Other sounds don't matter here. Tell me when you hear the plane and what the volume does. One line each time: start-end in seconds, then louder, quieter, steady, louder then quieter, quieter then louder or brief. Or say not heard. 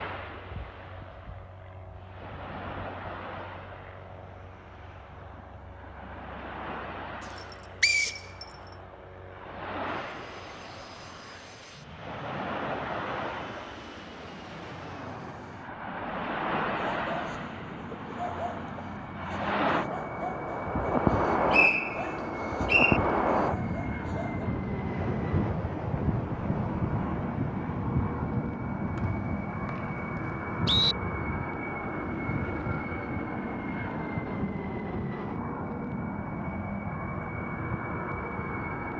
0.2-38.9 louder.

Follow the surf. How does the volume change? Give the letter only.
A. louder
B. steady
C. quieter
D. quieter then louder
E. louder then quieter
E.